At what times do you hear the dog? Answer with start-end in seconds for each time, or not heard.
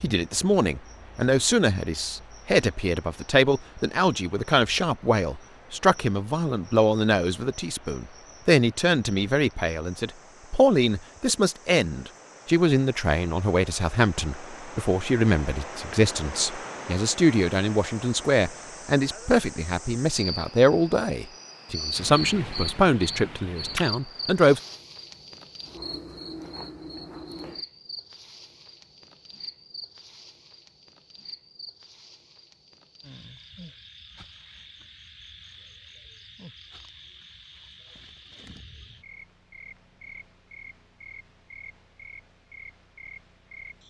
not heard.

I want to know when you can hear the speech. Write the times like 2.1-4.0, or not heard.
0.0-24.6.